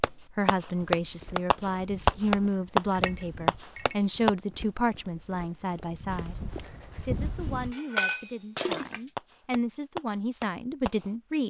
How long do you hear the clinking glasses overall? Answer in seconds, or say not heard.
2 s.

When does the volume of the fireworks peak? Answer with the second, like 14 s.
2 s.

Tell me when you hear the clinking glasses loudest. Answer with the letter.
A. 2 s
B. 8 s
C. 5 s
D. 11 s
B.